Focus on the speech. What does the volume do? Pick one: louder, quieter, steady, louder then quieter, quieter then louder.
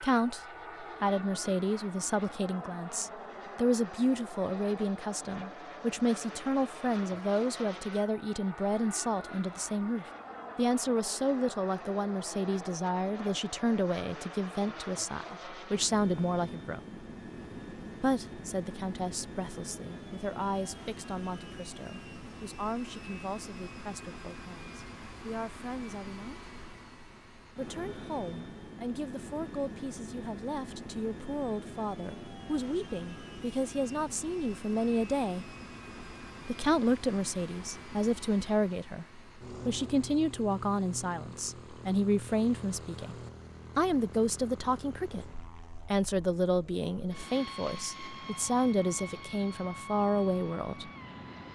quieter then louder.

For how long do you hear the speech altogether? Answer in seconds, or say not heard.
47 s.